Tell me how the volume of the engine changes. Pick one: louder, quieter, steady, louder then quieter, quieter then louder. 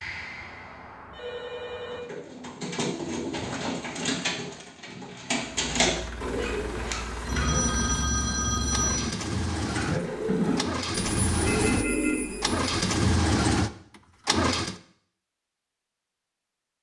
louder.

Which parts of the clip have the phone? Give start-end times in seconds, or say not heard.
0.0-2.0, 7.2-9.2, 11.4-12.2.